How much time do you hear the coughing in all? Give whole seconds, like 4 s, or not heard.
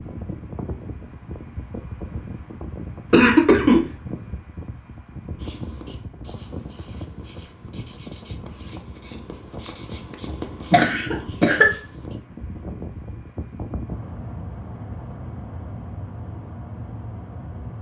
2 s.